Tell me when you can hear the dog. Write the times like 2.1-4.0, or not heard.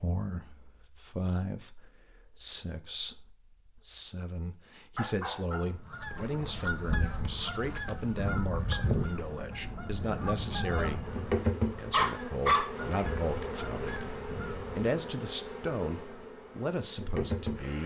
5.0-5.7, 11.9-12.8.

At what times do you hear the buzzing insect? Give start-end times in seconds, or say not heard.
11.0-17.8.